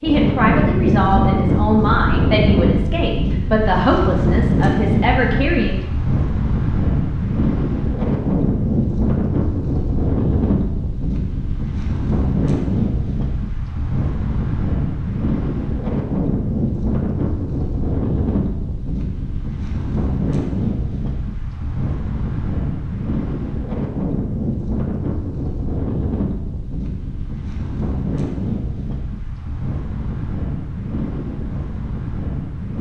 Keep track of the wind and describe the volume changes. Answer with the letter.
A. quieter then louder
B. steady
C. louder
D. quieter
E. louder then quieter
D.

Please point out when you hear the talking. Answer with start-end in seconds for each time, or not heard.
0.0-5.8.